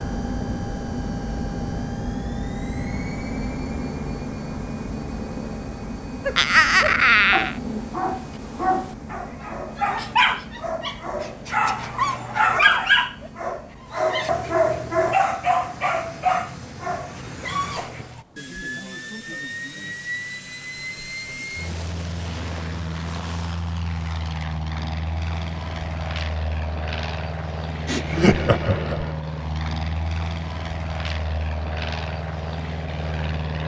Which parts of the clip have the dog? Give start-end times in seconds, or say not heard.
6.2-18.2.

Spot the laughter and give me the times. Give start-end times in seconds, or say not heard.
6.3-7.5, 27.9-29.1.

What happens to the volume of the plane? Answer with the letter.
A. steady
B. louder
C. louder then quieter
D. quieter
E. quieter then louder
E.